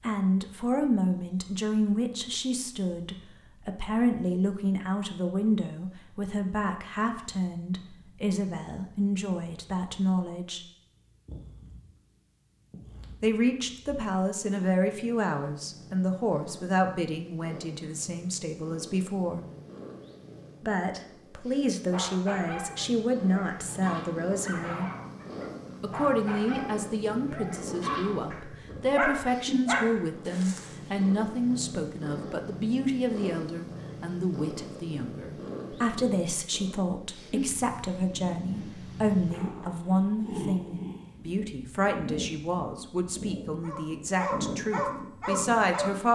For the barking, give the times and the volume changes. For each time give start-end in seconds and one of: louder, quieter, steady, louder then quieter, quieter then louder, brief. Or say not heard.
21.9-30.8 louder
43.6-45.9 brief.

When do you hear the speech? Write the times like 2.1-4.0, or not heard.
0.0-10.7, 13.2-19.4, 20.6-24.9, 25.8-46.0.